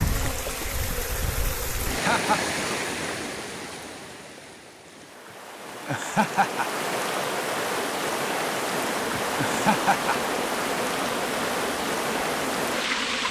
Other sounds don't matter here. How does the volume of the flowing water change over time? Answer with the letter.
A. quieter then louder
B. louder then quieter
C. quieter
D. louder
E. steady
A.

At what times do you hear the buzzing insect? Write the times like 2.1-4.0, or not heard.
0.0-1.9, 8.7-13.2.